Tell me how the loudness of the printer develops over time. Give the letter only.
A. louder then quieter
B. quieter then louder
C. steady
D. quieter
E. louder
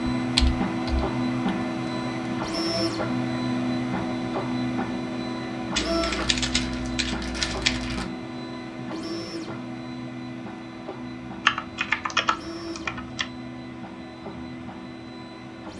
D.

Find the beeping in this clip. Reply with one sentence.
The beeping can't be heard in this clip.